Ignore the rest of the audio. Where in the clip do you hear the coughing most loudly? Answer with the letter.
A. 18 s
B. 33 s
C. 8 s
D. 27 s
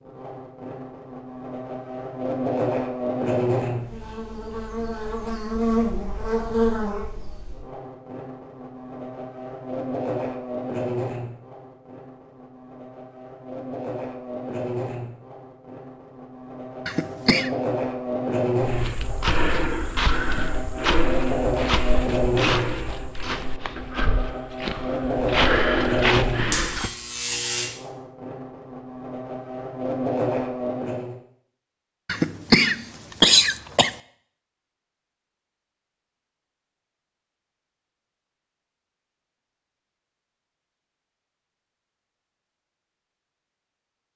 B.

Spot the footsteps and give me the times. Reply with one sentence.
You can hear the footsteps from 18.6 to 26.9 s.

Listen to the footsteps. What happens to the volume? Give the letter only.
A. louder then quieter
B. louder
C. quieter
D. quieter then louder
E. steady
D.